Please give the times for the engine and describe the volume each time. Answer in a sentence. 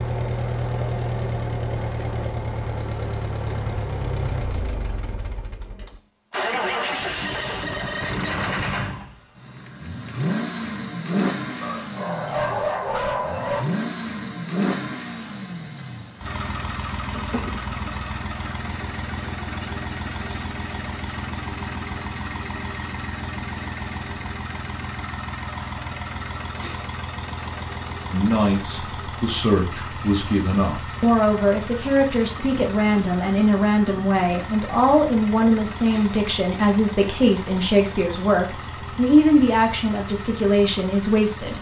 The engine can be heard from 0.0 to 41.5 s, getting quieter.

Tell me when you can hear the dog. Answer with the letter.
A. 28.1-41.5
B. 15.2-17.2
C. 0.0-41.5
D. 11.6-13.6
D.